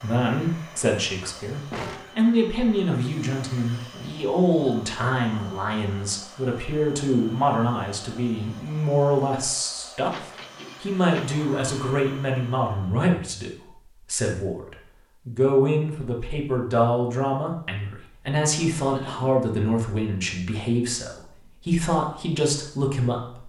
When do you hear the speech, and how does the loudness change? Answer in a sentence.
You can hear the speech from 0.0 to 23.4 s, at a steady volume.